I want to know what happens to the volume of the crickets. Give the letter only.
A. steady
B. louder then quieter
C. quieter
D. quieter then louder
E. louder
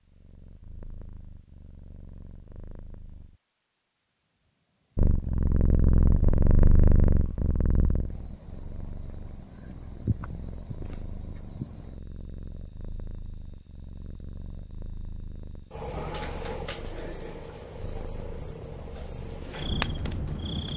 E.